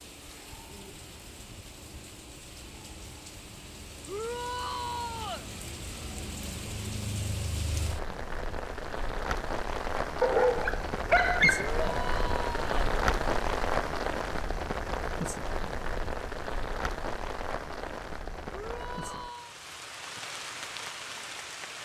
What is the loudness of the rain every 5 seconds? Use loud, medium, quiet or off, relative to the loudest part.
quiet, medium, loud, medium, medium.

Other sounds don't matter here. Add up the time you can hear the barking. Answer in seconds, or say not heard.
2 s.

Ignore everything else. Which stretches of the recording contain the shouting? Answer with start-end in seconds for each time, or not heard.
4.0-5.5, 11.6-12.7, 18.5-19.6.